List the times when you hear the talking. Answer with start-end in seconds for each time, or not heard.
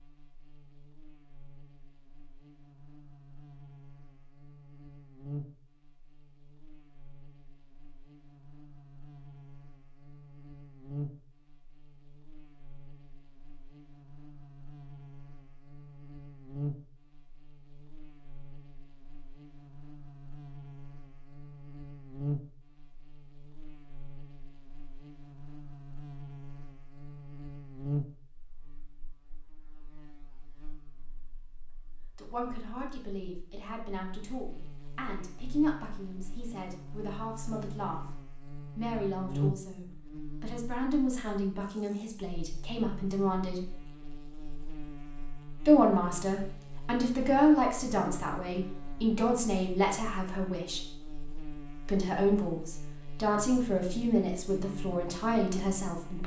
32.1-38.0, 38.8-43.7, 45.6-50.8, 51.9-56.2.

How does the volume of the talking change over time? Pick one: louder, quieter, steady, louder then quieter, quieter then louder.
louder.